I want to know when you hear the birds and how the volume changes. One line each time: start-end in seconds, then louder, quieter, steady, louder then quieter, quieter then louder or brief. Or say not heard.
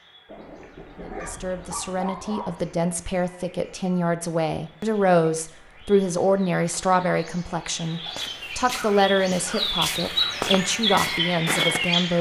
0.0-12.1 louder.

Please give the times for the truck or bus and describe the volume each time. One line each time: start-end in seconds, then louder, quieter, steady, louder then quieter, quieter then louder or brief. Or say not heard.
not heard.